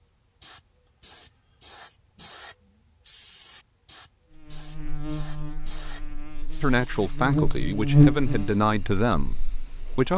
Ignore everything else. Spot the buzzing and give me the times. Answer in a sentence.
You can hear the buzzing from 4.3 to 9.9 s.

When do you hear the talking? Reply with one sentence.
The talking can be heard from 6.6 to 10.1 s.